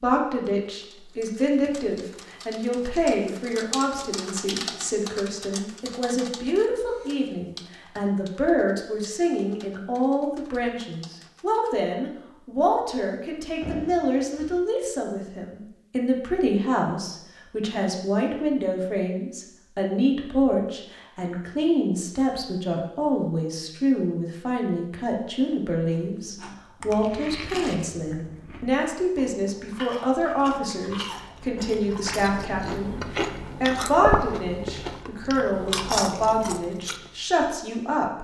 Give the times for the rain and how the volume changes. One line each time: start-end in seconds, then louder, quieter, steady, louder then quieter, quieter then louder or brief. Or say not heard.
not heard.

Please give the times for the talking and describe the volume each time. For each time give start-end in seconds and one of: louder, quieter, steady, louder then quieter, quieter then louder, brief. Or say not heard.
0.0-38.1 steady.